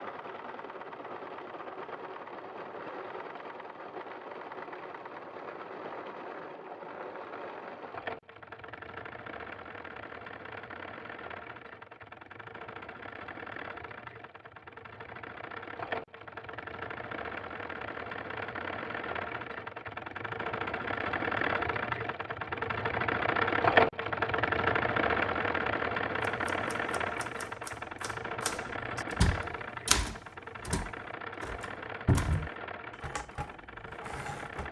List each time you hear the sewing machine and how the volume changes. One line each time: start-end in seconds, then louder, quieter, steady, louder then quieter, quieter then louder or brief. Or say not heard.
0.0-34.6 louder then quieter.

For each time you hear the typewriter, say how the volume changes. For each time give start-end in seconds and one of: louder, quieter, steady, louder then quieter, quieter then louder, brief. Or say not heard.
26.2-34.6 louder then quieter.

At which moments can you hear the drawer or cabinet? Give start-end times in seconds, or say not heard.
32.0-32.5.